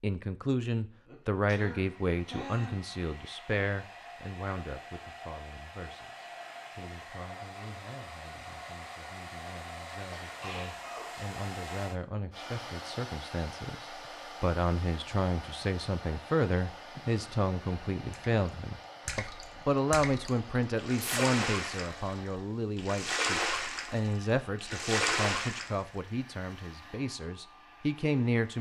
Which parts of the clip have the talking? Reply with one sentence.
You can hear the talking from 0.0 to 28.5 s.